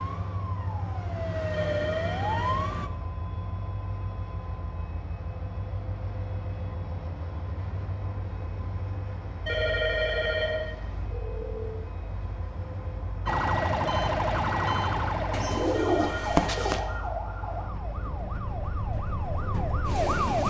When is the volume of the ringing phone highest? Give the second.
10 s.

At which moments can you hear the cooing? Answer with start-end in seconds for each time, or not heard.
15.3-16.9.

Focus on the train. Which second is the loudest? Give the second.
20 s.